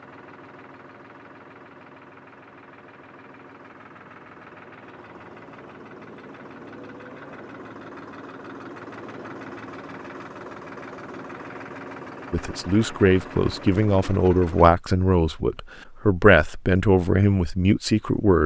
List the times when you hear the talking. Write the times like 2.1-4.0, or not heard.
12.3-18.4.